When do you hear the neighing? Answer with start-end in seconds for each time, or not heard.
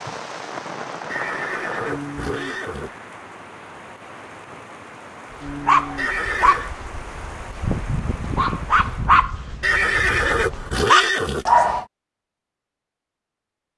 1.1-2.9, 6.0-6.7, 9.6-11.4.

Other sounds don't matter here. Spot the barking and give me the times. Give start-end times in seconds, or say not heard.
5.5-11.8.